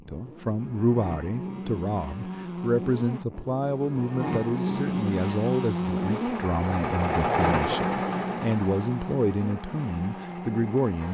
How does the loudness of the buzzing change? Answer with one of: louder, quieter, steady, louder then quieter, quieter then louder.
louder then quieter.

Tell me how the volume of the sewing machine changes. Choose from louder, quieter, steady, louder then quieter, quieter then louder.
louder then quieter.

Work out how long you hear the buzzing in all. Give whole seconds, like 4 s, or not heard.
11 s.